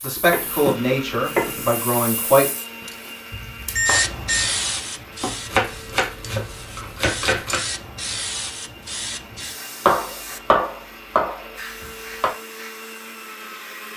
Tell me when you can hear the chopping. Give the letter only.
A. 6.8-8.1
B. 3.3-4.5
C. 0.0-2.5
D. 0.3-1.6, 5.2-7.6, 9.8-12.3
D.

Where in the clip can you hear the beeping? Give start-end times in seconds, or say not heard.
3.3-4.5.